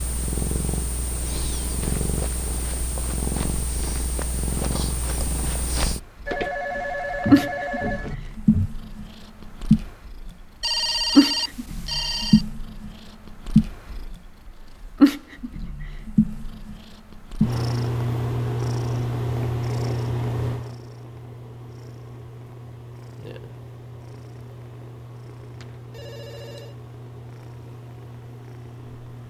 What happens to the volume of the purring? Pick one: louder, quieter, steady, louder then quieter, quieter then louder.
louder then quieter.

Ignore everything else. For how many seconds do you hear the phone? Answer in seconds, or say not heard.
5 s.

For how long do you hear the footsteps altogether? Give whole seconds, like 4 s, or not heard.
7 s.